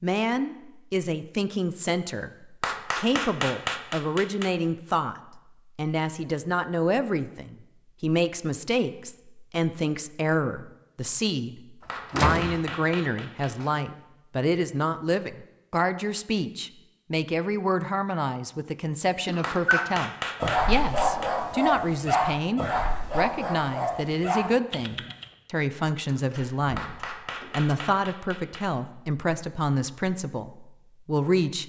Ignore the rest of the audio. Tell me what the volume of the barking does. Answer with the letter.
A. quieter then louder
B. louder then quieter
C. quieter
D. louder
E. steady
C.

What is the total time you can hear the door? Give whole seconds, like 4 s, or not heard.
3 s.